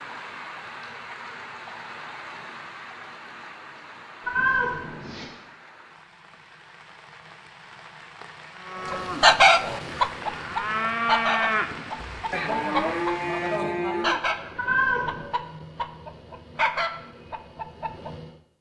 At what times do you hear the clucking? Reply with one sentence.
You can hear the clucking from 8.8 to 18.4 s.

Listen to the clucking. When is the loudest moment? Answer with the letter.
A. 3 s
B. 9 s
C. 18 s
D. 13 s
B.